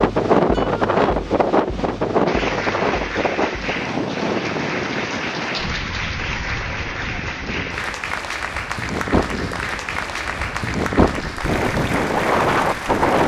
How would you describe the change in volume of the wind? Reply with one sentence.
The loudness of the wind goes down, then up.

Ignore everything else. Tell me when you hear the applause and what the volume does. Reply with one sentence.
You can hear the applause from 2.2 to 13.2 s, at a steady volume.